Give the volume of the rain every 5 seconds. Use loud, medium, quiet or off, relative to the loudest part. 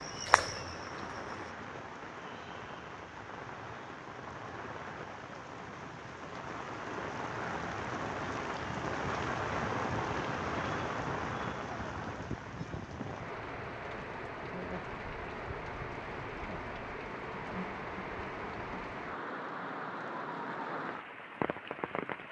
medium, loud, loud, loud, loud.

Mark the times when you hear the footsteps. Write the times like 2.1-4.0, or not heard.
0.0-1.6.